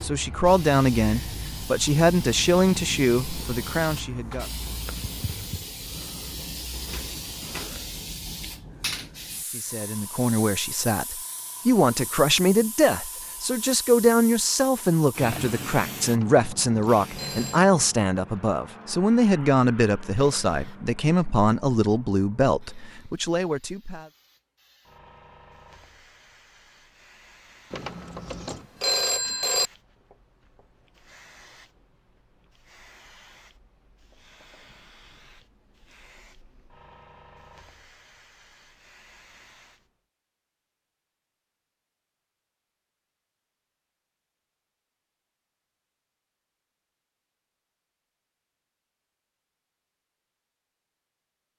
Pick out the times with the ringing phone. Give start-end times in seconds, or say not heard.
16.1-17.6, 27.7-29.7.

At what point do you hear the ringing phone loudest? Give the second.
29 s.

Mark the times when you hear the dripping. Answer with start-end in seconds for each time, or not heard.
not heard.